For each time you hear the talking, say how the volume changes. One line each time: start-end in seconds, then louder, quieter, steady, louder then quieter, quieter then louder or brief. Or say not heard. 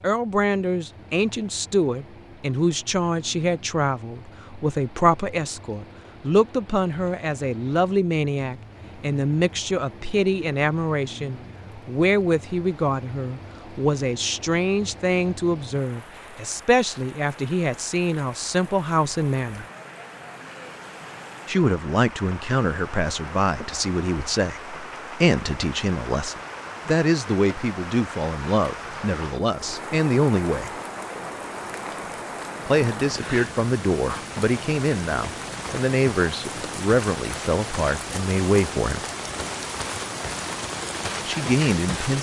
0.0-19.6 steady
21.4-30.7 steady
32.6-39.0 steady
41.2-42.1 brief.